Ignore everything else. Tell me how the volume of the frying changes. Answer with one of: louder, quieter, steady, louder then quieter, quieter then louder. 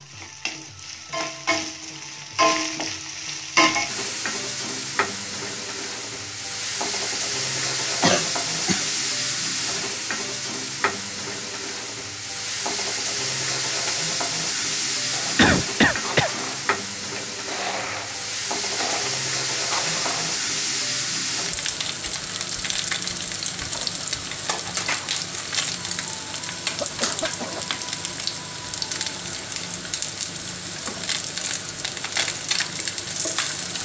steady.